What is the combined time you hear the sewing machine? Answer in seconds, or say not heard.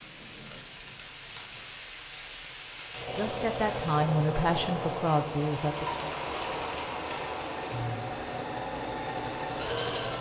7 s.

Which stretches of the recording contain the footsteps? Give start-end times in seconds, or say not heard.
not heard.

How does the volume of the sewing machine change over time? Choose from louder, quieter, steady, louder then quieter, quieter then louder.
quieter then louder.